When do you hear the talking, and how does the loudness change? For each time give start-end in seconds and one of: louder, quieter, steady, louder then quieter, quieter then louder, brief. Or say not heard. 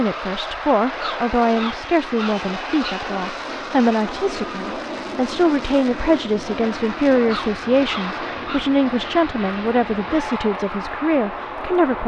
0.0-12.0 steady.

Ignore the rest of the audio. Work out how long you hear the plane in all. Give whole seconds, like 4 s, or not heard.
12 s.